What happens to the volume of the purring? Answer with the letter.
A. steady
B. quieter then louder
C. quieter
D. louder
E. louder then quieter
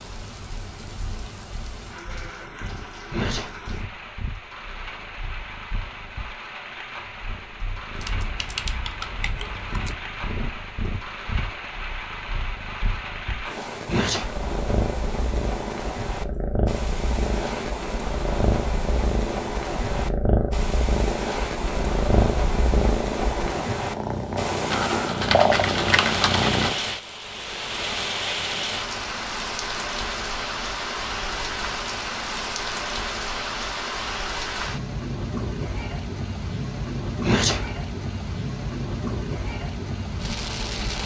D.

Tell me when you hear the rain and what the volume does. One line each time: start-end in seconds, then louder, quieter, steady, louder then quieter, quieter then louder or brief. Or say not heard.
0.0-41.0 louder.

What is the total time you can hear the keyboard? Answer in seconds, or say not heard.
4 s.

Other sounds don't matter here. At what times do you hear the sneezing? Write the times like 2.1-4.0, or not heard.
3.1-3.6, 13.8-14.3, 37.2-37.7.